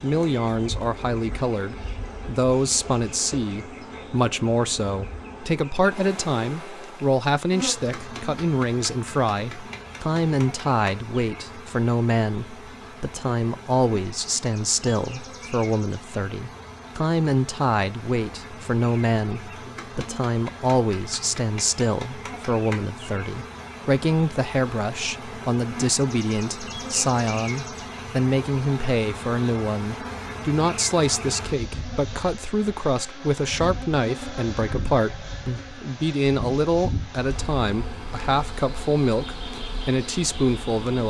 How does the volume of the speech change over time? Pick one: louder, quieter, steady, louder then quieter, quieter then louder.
steady.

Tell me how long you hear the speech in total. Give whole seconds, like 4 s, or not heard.
41 s.